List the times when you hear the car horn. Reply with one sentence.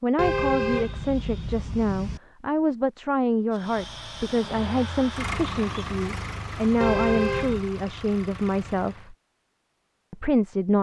You can hear the car horn from 0.1 to 2.2 s and from 6.8 to 7.7 s.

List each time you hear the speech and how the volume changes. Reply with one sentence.
The speech can be heard from 0.0 to 9.2 s, at a steady volume; and briefly from 10.1 to 10.7 s.